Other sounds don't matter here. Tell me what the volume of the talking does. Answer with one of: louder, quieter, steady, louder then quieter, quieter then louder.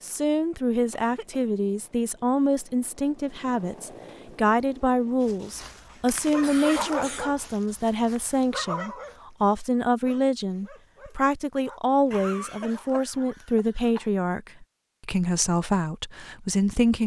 steady.